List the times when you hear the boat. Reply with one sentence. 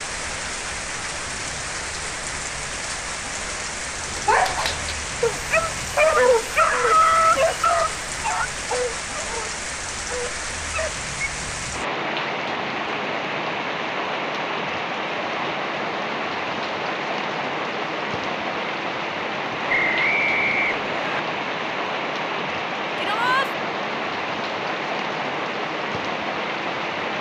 You can't hear the boat here.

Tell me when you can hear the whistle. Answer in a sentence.
The whistle can be heard from 19.6 to 21.2 s.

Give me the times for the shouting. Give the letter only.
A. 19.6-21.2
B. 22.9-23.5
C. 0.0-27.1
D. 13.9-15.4
B.